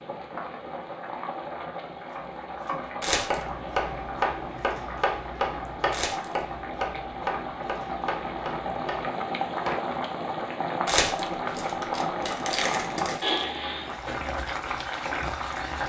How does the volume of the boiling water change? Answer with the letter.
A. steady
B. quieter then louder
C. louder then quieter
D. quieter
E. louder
E.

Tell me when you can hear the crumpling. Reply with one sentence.
The crumpling can be heard from 3.0 to 3.5 s, from 5.9 to 6.3 s and from 10.8 to 13.4 s.